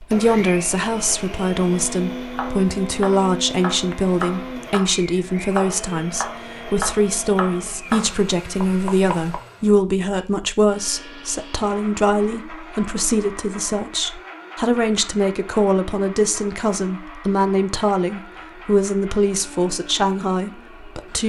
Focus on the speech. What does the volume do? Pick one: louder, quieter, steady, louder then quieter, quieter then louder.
steady.